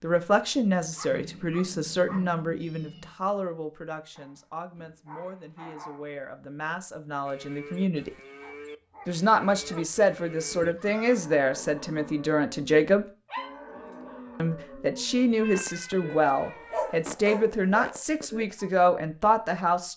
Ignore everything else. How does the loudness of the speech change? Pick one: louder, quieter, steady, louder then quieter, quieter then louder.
quieter then louder.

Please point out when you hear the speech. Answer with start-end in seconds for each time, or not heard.
0.0-8.1, 9.1-13.1, 14.3-19.9.